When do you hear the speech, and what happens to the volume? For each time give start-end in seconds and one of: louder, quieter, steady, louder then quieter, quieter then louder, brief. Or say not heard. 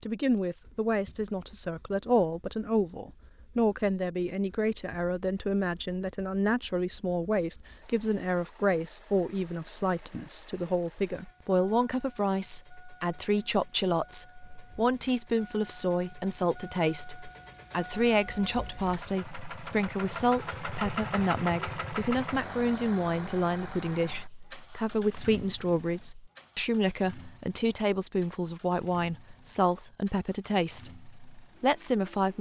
0.0-32.3 steady.